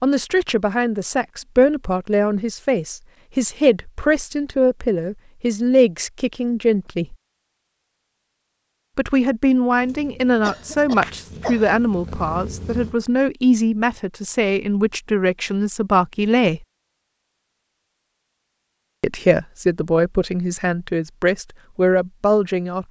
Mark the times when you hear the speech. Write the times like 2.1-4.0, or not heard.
0.0-7.2, 8.9-16.6, 19.0-22.8.